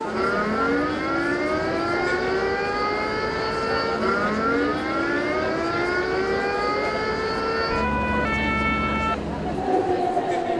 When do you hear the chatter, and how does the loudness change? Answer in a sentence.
The chatter can be heard from 0.0 to 10.5 s, at a steady volume.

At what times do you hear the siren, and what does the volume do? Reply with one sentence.
You can hear the siren from 0.0 to 10.5 s, at a steady volume.